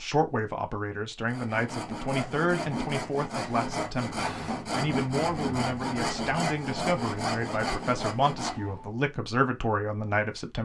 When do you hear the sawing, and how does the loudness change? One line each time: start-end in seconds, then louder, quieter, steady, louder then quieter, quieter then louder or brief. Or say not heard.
1.2-8.9 steady.